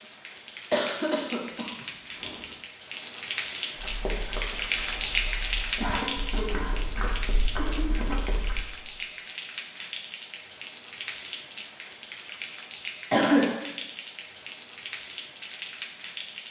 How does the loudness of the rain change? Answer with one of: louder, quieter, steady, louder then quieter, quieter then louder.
louder then quieter.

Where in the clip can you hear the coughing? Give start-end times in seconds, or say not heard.
0.7-2.4, 5.8-8.2, 13.1-13.6.